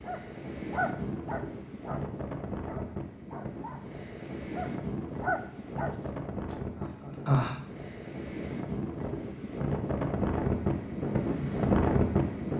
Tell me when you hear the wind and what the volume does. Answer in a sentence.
You can hear the wind from 0.0 to 12.5 s, getting louder.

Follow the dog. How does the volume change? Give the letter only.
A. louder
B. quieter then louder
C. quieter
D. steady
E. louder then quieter
B.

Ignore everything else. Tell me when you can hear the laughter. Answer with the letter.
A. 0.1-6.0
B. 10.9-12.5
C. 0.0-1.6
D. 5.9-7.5
D.